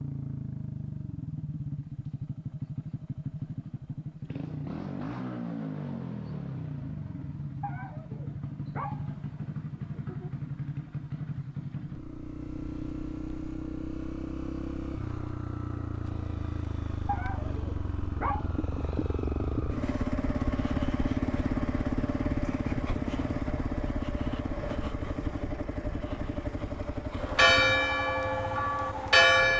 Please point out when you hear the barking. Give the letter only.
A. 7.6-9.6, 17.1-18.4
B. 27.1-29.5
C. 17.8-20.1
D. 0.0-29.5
A.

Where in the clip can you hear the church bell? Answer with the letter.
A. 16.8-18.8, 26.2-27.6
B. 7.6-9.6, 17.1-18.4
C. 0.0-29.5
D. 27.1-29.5
D.